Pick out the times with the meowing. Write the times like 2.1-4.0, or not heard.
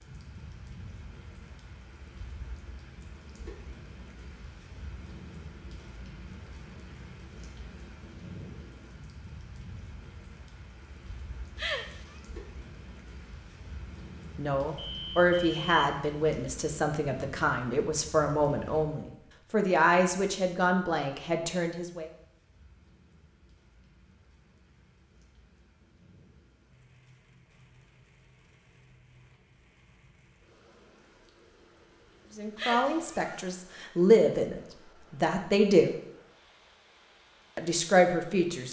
11.6-12.2, 32.5-33.5.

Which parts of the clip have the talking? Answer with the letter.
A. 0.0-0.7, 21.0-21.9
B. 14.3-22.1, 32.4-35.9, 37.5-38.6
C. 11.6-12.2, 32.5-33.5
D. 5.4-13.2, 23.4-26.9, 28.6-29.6
B.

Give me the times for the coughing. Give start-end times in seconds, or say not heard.
not heard.